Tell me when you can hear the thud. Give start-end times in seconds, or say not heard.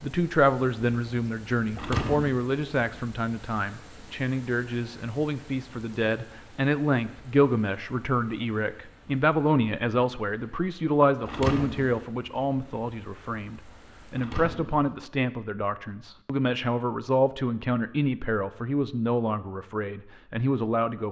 1.7-2.4, 11.2-12.1, 14.1-14.9.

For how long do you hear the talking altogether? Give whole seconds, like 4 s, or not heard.
21 s.